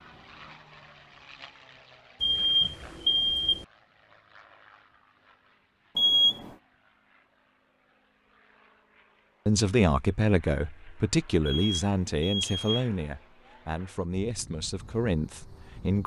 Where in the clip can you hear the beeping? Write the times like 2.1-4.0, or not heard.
2.2-3.6, 6.0-6.5, 11.4-12.8.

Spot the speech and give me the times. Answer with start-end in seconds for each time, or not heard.
9.4-16.0.